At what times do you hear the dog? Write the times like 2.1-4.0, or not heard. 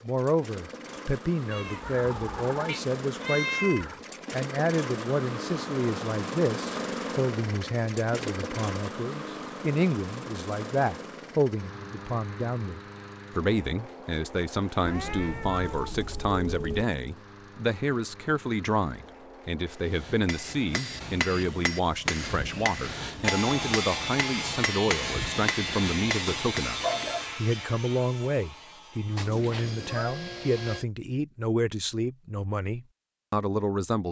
26.1-27.2.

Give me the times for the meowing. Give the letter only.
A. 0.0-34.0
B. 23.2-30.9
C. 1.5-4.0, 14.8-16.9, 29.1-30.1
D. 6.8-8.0
C.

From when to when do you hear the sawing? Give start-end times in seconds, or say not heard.
23.2-30.9.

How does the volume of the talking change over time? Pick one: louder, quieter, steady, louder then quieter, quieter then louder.
steady.